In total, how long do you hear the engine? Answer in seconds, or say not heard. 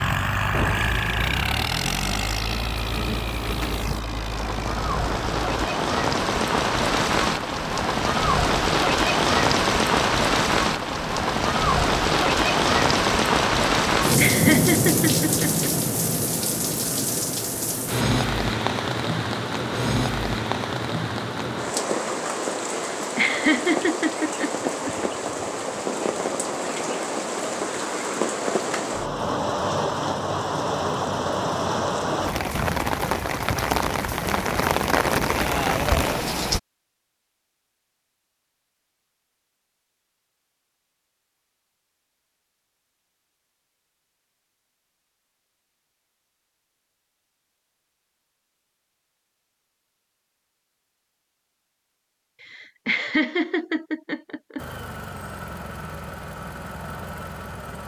9 s.